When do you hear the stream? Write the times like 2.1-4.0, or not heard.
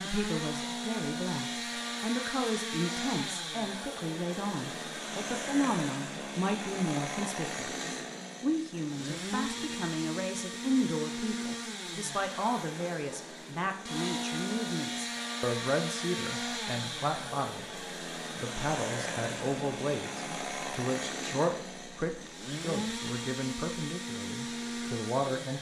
not heard.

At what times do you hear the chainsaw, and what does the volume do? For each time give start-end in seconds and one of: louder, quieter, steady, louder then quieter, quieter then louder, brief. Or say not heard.
0.0-25.5 steady.